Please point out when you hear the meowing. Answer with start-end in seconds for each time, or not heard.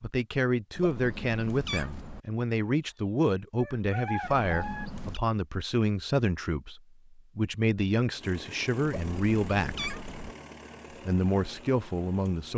0.8-2.2, 4.2-5.2, 8.8-10.3.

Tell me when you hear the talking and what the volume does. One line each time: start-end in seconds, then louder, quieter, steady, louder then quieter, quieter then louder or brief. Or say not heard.
0.0-9.9 steady
11.1-12.5 brief.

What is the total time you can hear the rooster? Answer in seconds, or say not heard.
2 s.